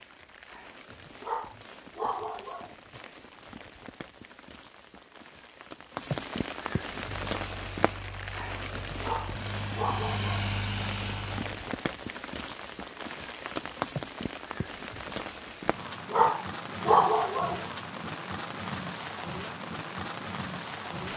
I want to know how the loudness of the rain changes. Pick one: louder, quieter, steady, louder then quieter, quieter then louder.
louder.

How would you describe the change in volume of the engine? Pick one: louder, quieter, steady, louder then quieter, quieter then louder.
louder.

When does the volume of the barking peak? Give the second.
17 s.